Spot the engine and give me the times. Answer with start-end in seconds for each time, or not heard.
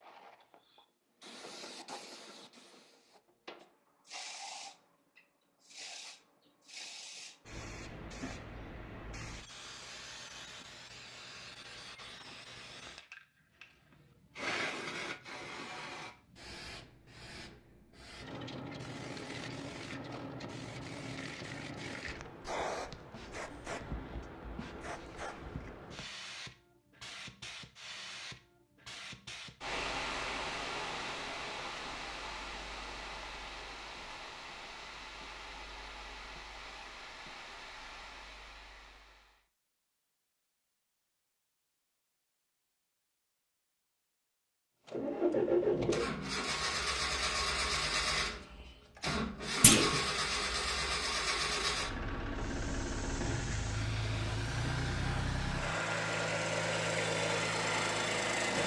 44.9-58.6.